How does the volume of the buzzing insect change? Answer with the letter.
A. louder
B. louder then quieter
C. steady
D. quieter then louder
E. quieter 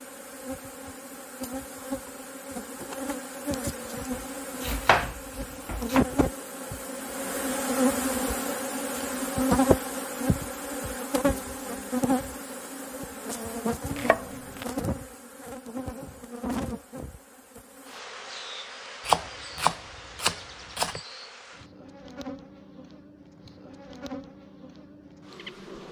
B.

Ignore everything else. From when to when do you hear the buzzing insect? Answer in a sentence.
You can hear the buzzing insect from 0.0 to 25.8 s.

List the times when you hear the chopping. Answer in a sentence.
You can hear the chopping from 4.1 to 6.0 s, from 13.9 to 14.7 s and from 19.1 to 21.0 s.